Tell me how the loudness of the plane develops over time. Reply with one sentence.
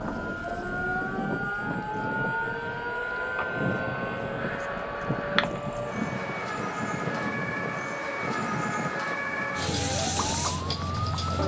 The loudness of the plane goes down.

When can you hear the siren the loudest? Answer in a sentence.
The volume of the siren peaks at 10 seconds.